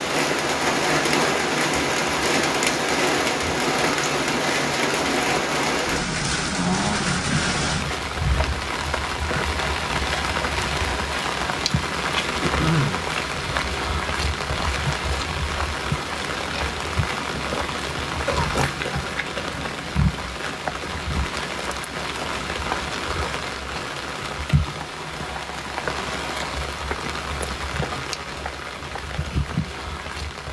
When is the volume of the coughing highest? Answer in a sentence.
The volume of the coughing peaks at 13 seconds.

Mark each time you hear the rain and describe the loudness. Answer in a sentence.
The rain can be heard from 0.0 to 30.4 s, getting quieter.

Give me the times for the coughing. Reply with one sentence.
You can hear the coughing from 12.4 to 13.1 s and from 18.2 to 19.6 s.